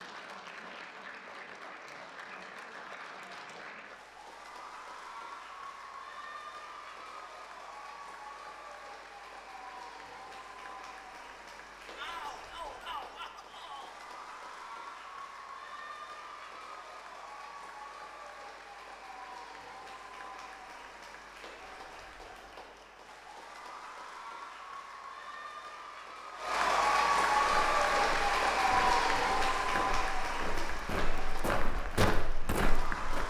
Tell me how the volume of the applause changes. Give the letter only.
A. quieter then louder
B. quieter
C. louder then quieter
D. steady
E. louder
E.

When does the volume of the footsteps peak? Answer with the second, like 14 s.
32 s.